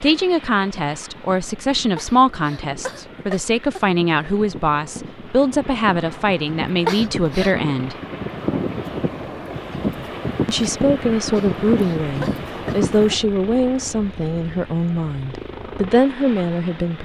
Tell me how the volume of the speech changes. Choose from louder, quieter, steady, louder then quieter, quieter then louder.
steady.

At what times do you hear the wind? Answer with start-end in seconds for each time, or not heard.
0.0-13.3.